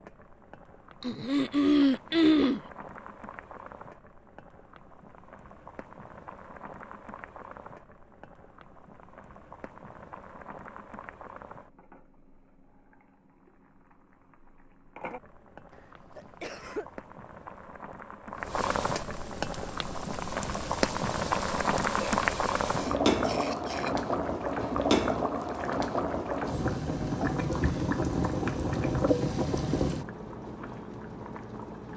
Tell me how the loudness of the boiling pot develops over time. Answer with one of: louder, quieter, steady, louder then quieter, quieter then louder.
louder.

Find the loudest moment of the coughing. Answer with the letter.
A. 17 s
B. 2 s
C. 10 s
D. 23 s
B.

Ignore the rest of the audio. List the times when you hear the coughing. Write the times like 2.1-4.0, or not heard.
1.0-2.6, 15.7-16.9, 21.9-23.9.